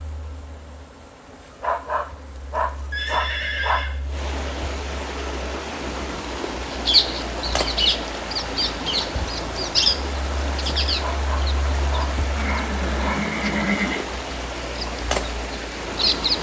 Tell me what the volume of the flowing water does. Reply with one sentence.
The loudness of the flowing water goes up.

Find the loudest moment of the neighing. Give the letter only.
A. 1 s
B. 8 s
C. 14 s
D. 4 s
C.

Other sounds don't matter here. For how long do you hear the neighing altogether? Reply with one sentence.
You can hear the neighing for 3 seconds altogether.